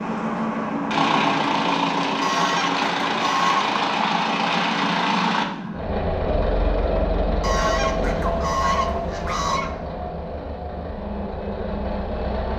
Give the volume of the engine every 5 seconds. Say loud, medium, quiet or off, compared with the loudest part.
loud, loud, medium.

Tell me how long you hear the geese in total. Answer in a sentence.
The geese can be heard for 4 seconds in total.